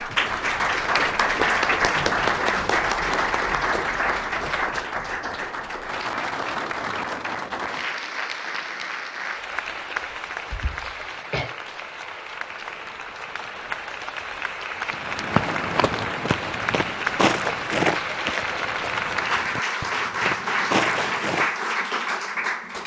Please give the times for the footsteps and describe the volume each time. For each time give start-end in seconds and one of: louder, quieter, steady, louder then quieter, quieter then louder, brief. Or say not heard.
14.9-21.5 quieter then louder.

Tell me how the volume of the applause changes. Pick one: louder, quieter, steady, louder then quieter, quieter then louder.
quieter then louder.